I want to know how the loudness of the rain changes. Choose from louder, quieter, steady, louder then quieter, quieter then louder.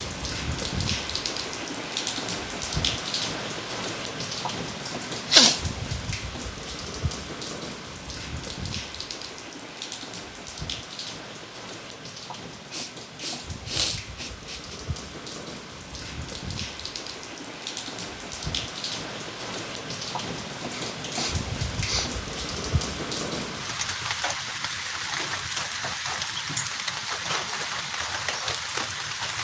quieter then louder.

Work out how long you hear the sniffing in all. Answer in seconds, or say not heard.
4 s.